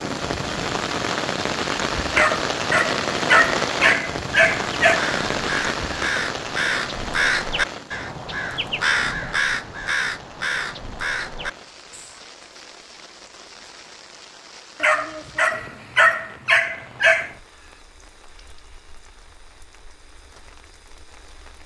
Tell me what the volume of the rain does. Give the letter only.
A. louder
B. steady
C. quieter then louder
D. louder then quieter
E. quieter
E.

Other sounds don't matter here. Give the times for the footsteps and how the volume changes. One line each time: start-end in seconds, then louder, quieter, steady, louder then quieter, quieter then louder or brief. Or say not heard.
not heard.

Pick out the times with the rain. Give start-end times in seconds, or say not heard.
0.0-21.6.